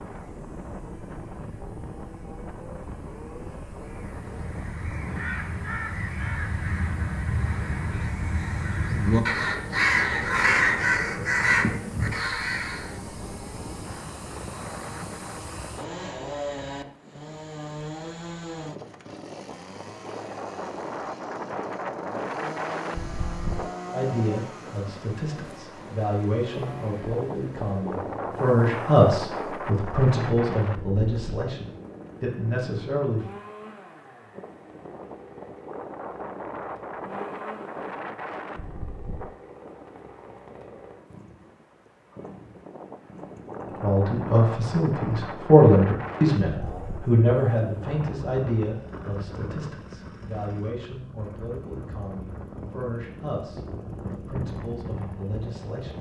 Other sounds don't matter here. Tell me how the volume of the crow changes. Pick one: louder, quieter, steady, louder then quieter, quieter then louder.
louder.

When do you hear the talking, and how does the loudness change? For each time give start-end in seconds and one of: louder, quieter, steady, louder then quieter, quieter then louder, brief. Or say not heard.
23.9-33.2 louder then quieter
43.6-55.9 quieter.